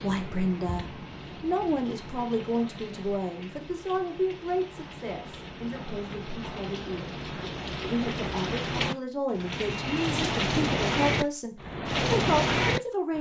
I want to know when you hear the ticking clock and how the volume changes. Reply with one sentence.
The ticking clock can't be heard in this clip.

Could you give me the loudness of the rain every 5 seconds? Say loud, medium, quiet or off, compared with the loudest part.
quiet, medium, loud.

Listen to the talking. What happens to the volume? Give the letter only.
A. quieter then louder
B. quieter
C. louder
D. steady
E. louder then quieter
A.